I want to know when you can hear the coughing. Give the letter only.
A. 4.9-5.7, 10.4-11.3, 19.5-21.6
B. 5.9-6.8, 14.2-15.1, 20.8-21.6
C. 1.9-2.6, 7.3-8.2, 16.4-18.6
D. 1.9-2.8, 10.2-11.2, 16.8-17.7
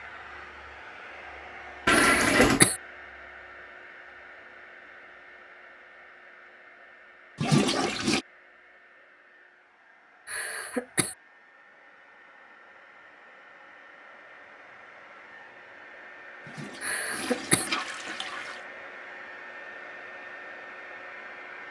D.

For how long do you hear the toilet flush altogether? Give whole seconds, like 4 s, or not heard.
4 s.